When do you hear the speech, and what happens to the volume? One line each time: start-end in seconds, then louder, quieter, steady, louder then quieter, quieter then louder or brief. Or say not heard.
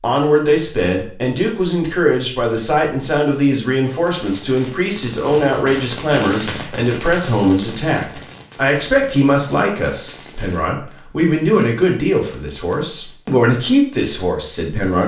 0.0-15.0 steady.